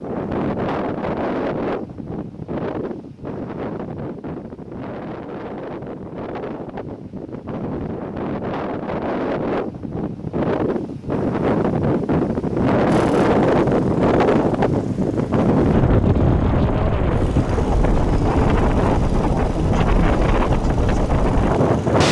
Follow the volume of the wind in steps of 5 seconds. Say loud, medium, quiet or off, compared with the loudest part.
medium, medium, loud, loud, loud.